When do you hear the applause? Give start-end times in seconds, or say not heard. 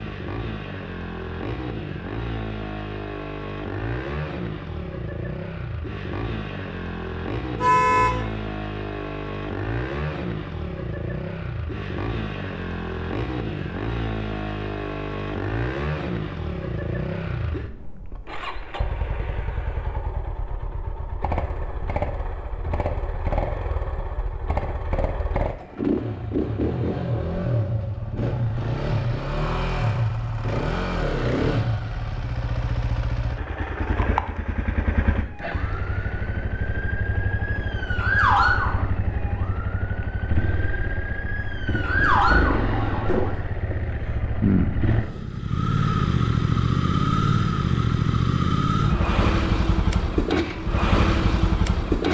not heard.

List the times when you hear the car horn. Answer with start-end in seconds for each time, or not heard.
7.5-8.2.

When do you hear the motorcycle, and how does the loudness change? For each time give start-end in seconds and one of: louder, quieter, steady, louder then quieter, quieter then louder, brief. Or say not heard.
0.0-52.0 louder.